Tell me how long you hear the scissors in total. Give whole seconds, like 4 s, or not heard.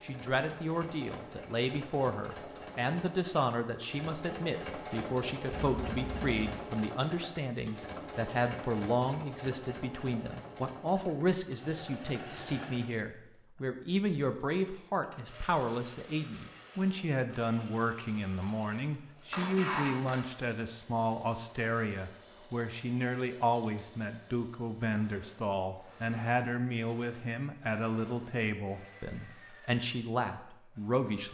2 s.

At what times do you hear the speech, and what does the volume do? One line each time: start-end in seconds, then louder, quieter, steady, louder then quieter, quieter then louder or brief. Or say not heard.
0.0-31.2 steady.